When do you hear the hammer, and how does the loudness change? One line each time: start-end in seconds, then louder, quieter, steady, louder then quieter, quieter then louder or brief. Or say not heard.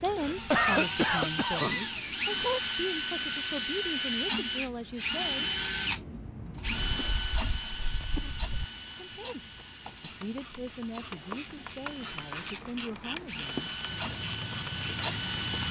not heard.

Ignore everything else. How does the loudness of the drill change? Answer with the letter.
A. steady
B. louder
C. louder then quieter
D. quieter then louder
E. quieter
D.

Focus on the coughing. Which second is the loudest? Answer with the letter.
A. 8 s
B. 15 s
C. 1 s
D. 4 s
C.